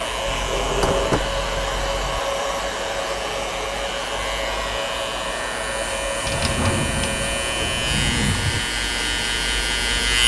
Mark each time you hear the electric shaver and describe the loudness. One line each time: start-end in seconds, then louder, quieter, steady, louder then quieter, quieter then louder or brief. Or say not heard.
0.0-10.2 louder.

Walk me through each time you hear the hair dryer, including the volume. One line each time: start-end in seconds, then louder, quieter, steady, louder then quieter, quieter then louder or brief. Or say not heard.
0.0-10.1 quieter.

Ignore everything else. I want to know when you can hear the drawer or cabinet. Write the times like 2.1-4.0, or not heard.
0.2-2.2, 6.2-8.7.